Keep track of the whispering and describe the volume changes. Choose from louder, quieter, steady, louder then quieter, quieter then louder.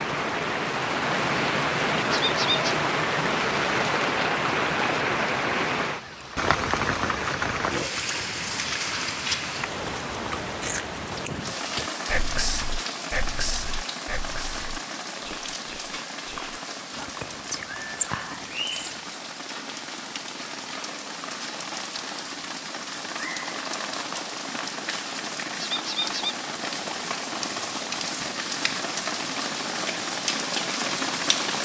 quieter then louder.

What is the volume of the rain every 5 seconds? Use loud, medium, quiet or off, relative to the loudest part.
loud, loud, medium, medium, medium, medium, loud.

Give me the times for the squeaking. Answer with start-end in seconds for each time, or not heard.
2.1-2.8, 25.6-26.4.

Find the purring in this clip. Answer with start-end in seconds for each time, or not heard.
not heard.